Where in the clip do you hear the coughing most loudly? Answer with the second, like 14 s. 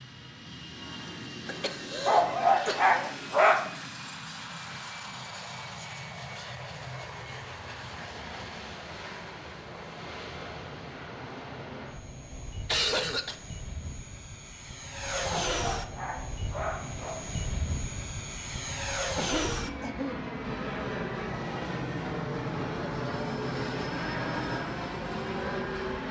13 s.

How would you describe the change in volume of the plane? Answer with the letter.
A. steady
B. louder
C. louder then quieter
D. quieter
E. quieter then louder
B.